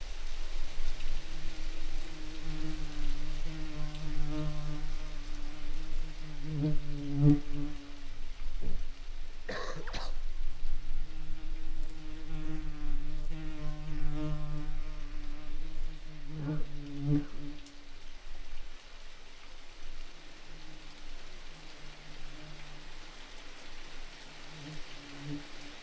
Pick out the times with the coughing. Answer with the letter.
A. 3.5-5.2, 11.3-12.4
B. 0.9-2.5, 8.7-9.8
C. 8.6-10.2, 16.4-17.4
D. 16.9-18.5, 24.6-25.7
C.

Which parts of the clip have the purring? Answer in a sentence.
You can't hear the purring here.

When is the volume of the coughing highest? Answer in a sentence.
The volume of the coughing peaks at 10 seconds.